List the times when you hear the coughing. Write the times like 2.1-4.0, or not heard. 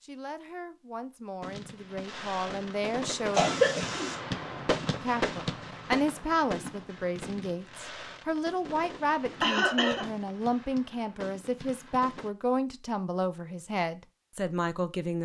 3.4-4.2, 9.4-10.1.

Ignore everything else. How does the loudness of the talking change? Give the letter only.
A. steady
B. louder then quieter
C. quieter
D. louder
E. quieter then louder
D.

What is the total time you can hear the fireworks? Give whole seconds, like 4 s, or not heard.
11 s.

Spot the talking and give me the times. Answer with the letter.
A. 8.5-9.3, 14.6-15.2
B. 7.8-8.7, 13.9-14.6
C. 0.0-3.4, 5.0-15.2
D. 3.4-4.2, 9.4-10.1
C.